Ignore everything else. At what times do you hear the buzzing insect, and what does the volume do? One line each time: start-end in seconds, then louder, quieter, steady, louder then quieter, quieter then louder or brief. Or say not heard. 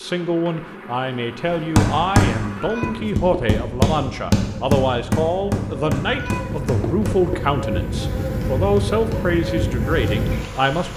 0.0-10.9 louder.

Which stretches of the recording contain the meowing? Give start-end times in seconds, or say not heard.
2.4-3.6, 6.0-7.4.